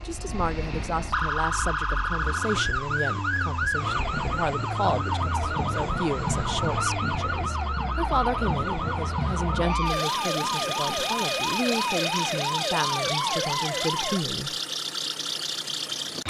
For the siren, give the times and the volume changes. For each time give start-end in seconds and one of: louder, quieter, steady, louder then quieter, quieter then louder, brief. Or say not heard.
0.0-14.2 steady.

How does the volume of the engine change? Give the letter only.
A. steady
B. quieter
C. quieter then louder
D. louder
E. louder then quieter
D.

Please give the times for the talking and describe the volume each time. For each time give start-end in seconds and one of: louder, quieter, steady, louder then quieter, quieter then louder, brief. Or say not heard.
0.1-14.6 steady.